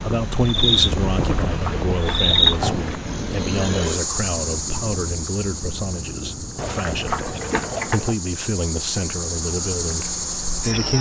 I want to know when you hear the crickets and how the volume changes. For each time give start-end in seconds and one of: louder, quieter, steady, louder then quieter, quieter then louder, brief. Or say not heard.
0.0-10.9 quieter then louder.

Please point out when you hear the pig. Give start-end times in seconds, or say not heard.
1.1-3.0, 6.5-8.2.